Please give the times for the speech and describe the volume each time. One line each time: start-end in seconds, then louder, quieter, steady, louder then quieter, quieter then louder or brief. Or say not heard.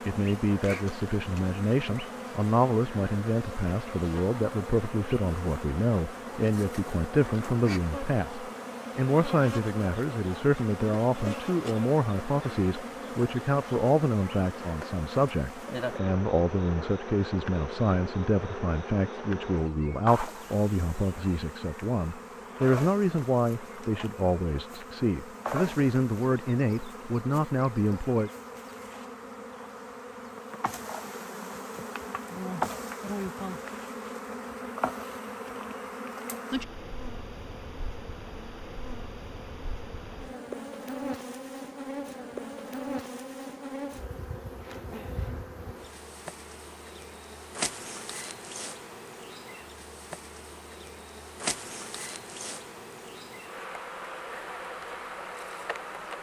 0.1-28.3 steady.